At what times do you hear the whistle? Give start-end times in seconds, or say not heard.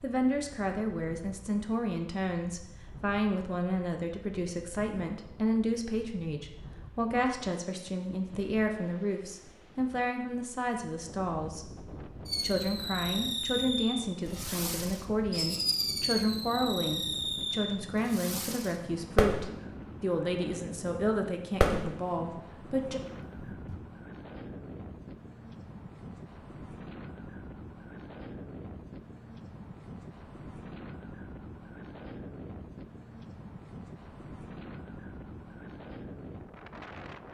not heard.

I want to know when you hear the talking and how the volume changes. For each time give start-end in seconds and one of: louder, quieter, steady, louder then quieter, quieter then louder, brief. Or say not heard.
0.0-23.0 steady.